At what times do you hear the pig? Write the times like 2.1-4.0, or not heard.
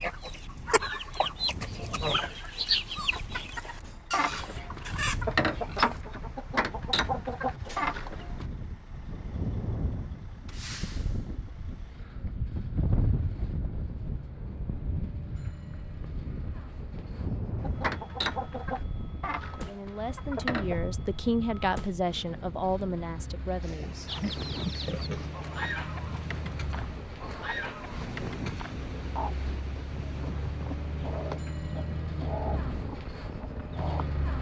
4.1-6.0, 23.6-25.4.